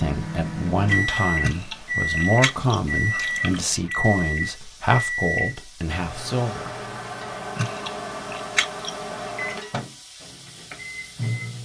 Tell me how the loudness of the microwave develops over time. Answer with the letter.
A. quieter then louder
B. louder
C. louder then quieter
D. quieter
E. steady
D.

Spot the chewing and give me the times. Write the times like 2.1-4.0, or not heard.
1.4-4.0, 7.5-9.2.